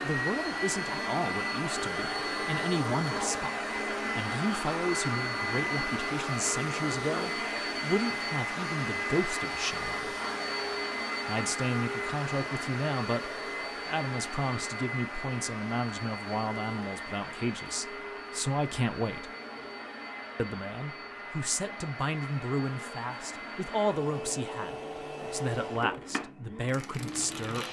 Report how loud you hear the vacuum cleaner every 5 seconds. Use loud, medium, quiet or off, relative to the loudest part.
loud, loud, loud, medium, medium, medium.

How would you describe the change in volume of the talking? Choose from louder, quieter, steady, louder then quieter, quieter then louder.
steady.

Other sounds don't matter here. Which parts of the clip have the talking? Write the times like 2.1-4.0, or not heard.
0.0-10.2, 11.2-19.3, 20.4-27.6.